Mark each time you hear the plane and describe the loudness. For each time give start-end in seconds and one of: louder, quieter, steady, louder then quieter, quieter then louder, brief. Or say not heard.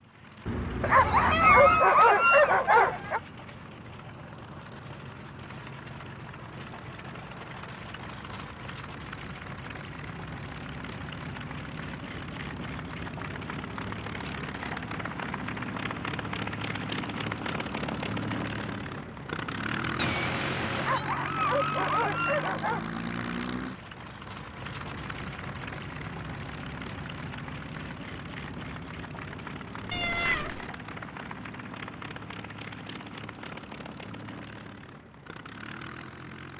0.0-36.5 louder then quieter.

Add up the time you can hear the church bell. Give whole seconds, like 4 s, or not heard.
not heard.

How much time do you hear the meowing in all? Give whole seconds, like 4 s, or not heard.
3 s.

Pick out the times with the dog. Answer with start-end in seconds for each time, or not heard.
0.8-3.2, 20.8-22.9.